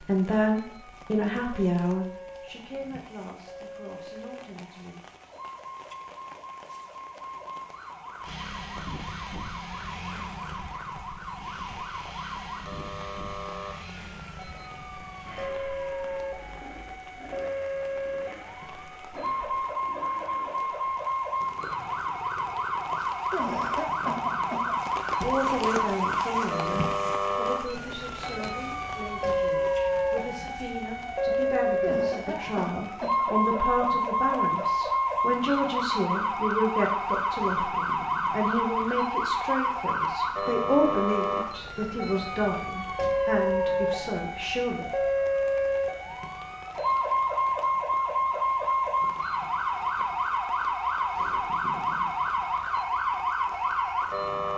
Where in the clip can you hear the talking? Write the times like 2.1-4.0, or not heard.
0.0-5.0, 25.2-44.9.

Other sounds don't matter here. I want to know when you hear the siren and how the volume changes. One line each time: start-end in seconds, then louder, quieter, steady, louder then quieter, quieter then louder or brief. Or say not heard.
0.0-54.5 louder.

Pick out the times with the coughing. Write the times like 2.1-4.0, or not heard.
23.3-24.8, 31.8-33.2.